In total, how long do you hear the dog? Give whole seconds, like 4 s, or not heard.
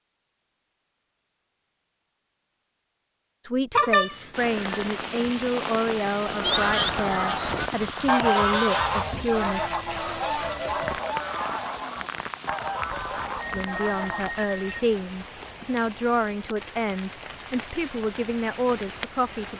not heard.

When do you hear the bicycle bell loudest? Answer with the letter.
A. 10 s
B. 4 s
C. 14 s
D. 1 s
B.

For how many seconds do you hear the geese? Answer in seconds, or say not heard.
8 s.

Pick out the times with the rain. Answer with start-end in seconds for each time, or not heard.
4.3-19.5.